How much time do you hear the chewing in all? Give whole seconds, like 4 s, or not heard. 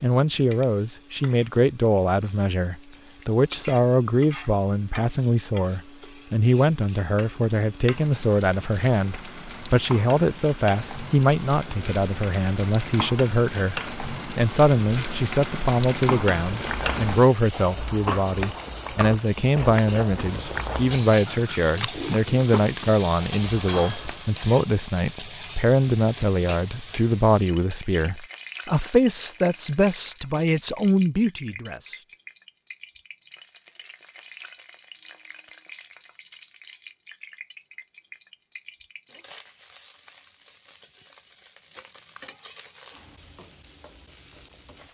8 s.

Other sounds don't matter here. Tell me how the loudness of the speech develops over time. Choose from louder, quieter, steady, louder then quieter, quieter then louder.
steady.